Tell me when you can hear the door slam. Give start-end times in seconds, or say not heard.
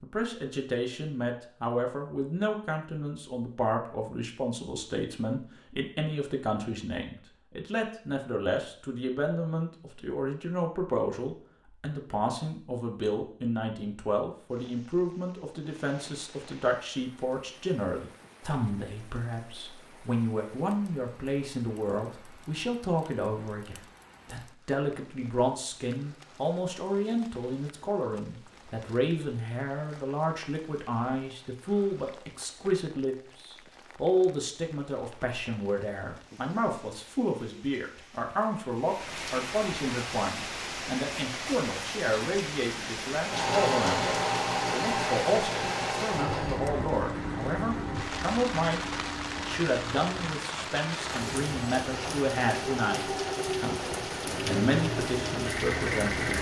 not heard.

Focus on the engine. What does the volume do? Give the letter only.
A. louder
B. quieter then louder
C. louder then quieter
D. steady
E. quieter
B.